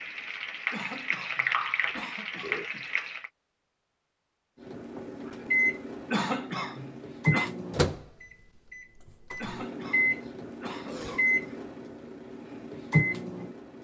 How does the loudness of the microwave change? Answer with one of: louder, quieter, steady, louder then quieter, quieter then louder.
steady.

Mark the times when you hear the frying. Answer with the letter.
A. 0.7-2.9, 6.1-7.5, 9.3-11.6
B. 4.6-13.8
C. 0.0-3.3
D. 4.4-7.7
C.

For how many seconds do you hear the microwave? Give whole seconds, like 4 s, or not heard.
9 s.